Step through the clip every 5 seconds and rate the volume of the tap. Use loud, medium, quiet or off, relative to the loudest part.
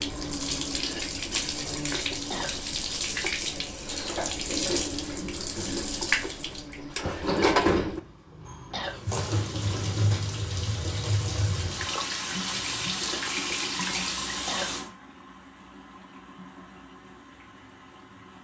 loud, loud, loud, quiet.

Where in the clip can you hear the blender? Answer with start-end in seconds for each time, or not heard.
not heard.